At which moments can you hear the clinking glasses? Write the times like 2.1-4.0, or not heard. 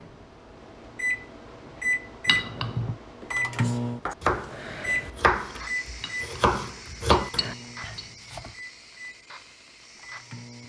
2.2-3.0, 6.0-8.2.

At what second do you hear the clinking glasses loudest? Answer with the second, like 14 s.
3 s.